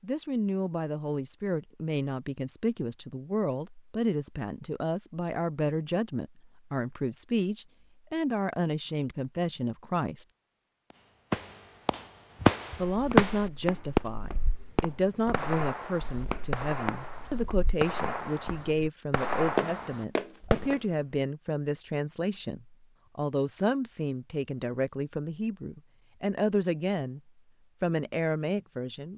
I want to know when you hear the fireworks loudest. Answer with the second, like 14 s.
13 s.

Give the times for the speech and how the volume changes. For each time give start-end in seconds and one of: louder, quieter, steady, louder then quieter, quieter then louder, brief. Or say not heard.
0.0-10.2 steady
12.8-27.2 steady
27.8-29.1 brief.